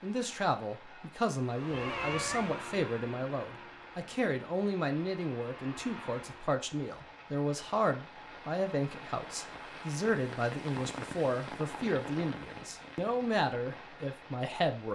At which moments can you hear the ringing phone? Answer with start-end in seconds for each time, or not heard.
not heard.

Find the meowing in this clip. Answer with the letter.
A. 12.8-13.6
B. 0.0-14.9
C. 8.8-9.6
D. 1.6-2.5
D.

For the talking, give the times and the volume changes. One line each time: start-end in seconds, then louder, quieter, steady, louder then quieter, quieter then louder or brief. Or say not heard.
0.0-14.9 steady.